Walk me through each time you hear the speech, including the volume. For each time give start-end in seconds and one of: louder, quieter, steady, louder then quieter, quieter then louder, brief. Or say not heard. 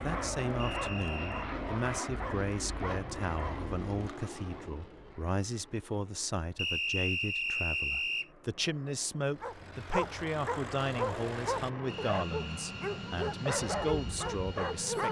0.0-15.0 steady.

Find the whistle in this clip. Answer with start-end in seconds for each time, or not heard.
0.6-1.6, 6.5-8.3, 12.1-12.9.